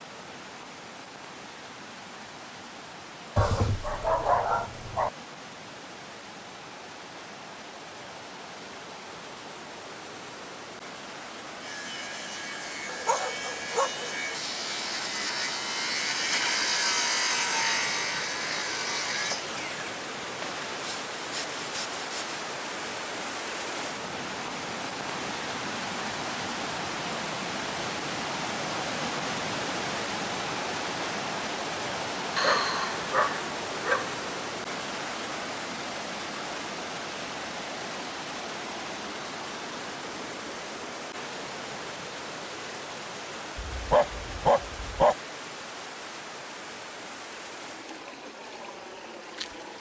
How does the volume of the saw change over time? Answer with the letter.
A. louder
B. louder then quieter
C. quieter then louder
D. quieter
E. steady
B.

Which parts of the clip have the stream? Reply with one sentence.
The stream can be heard from 0.0 to 49.7 s.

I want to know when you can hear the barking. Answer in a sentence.
You can hear the barking from 3.4 to 5.1 s, from 12.8 to 14.3 s, from 32.4 to 34.1 s and from 43.5 to 45.1 s.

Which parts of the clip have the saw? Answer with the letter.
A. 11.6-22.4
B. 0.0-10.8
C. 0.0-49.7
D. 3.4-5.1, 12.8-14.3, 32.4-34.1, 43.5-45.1
A.